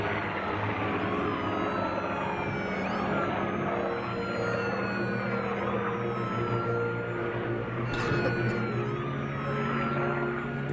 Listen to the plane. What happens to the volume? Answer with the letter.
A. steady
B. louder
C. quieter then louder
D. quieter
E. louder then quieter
A.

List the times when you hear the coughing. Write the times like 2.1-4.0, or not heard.
7.9-8.7.